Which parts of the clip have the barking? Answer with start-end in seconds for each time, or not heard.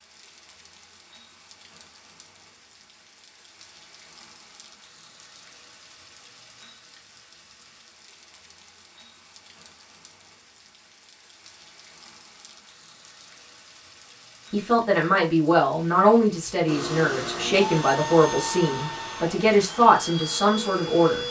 not heard.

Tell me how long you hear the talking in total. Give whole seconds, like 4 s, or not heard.
7 s.